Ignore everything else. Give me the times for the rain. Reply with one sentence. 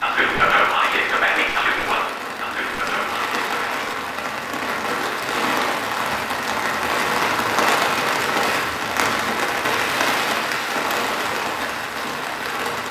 You can hear the rain from 0.0 to 12.8 s.